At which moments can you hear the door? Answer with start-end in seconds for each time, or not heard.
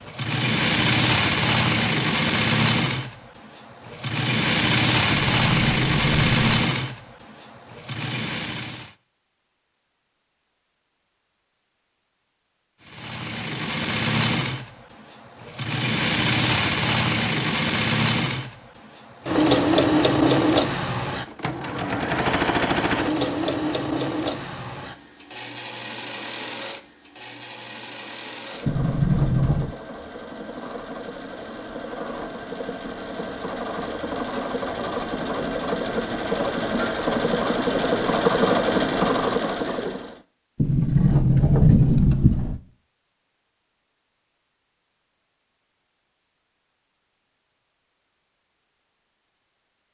5.1-6.5, 28.6-29.8, 40.5-42.6.